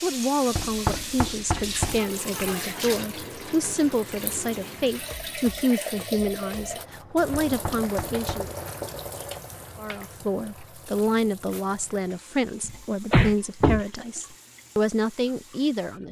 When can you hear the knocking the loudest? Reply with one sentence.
The volume of the knocking peaks at 13 seconds.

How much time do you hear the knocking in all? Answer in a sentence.
The knocking can be heard for 4 seconds in total.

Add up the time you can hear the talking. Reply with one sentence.
The talking can be heard for 15 seconds in total.